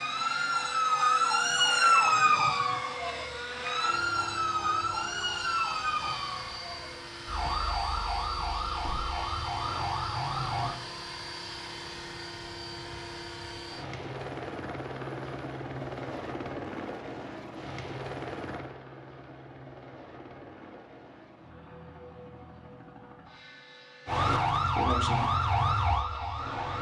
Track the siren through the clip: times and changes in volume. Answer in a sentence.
You can hear the siren from 0.0 to 10.8 s, getting quieter; and briefly from 24.1 to 26.7 s.